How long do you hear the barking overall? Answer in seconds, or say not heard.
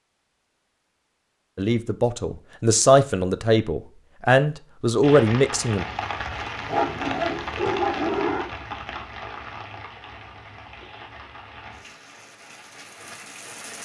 2 s.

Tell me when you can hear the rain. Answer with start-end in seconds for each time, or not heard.
5.0-13.7.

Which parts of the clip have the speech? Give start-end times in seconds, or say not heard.
1.6-5.8.